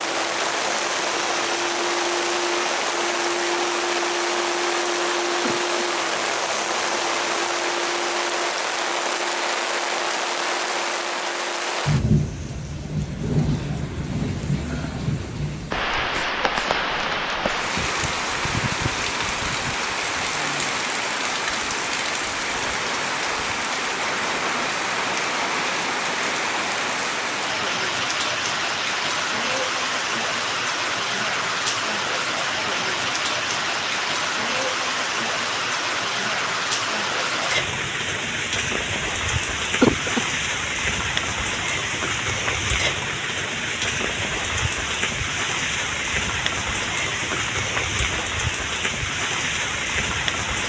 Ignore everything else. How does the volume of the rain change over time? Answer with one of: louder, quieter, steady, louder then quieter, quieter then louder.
steady.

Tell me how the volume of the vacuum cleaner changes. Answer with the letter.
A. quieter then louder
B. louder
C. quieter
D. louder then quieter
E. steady
C.